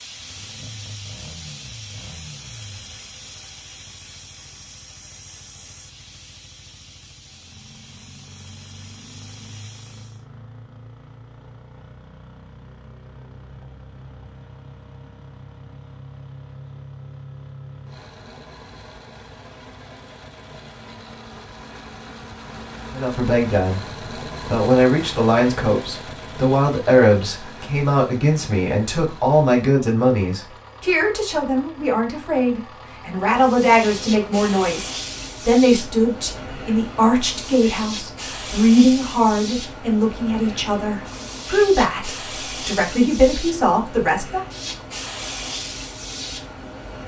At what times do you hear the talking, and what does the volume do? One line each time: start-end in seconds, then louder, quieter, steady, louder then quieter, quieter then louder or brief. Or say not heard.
22.9-44.4 steady.